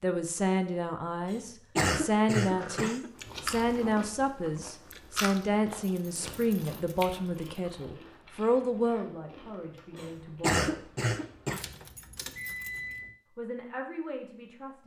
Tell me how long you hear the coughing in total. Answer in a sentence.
You can hear the coughing for 3 seconds altogether.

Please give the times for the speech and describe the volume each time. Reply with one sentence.
You can hear the speech from 0.0 to 10.8 s, at a steady volume; and briefly from 13.3 to 14.8 s.